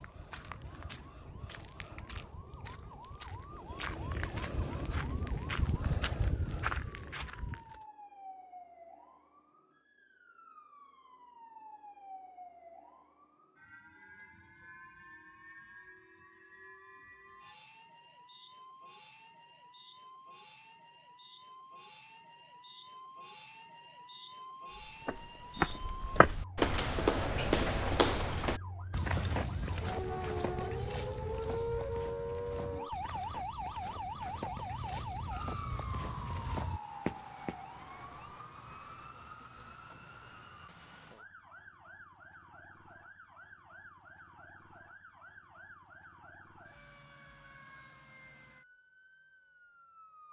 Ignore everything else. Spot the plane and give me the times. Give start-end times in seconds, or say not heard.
not heard.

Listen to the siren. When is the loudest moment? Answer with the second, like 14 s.
32 s.